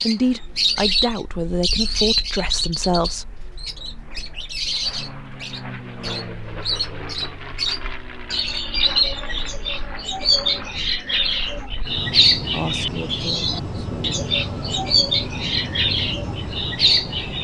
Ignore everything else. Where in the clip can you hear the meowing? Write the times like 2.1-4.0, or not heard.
not heard.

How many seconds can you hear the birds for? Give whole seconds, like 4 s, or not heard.
17 s.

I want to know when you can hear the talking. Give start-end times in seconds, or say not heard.
0.0-3.5, 12.3-14.2.